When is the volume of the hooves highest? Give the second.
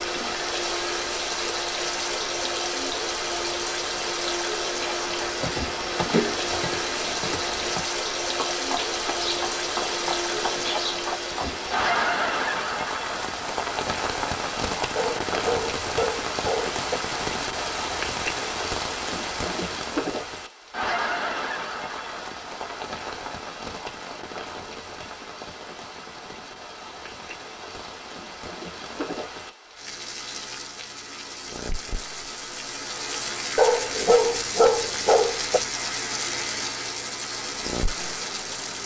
6 s.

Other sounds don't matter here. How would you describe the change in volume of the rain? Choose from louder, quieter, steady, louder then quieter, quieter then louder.
quieter then louder.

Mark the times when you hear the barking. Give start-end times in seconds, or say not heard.
14.9-16.9, 33.5-35.6.